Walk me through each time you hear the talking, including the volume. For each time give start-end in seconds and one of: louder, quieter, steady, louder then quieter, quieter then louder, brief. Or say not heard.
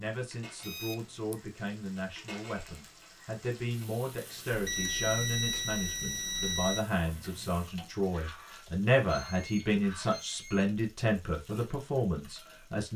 0.0-12.9 louder.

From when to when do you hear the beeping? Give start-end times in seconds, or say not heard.
0.6-1.4, 4.5-6.8, 8.7-10.7.